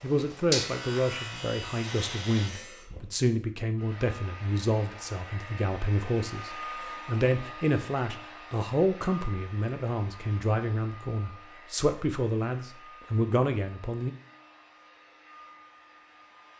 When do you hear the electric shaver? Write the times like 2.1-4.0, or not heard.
0.0-2.9.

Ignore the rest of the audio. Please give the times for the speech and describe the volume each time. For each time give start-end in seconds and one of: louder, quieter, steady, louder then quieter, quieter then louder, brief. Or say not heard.
0.0-14.1 steady.